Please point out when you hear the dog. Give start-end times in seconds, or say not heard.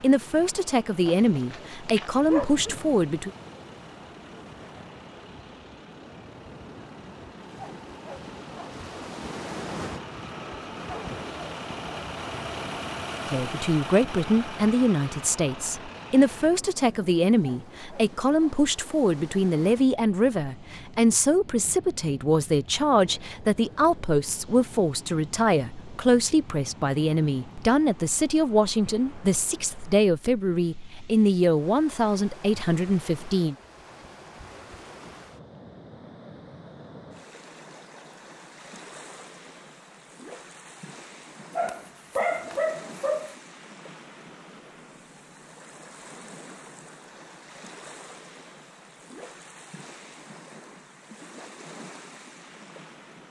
1.1-3.0, 41.5-43.4.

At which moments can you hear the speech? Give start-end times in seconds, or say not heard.
0.0-3.3, 13.3-33.5.